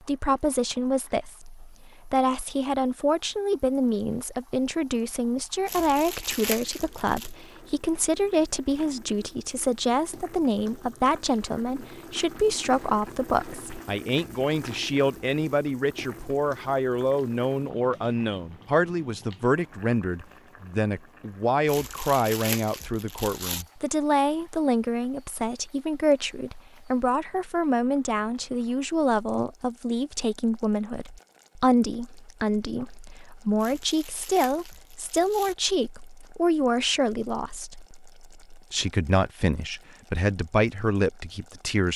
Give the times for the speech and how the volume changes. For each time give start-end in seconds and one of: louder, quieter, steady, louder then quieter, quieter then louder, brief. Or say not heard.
0.1-41.9 steady.